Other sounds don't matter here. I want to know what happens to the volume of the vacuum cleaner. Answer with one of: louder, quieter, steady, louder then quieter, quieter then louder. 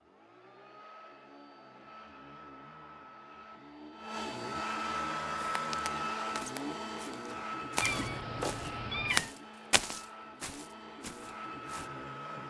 louder then quieter.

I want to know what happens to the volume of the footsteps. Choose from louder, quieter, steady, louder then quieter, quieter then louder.
louder then quieter.